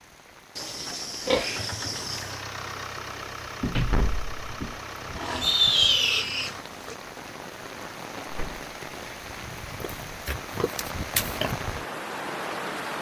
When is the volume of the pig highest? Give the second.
6 s.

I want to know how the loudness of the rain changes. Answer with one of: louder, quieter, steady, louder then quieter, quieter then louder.
louder.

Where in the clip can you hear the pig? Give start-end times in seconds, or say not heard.
0.6-2.4, 5.2-7.0, 9.8-11.6.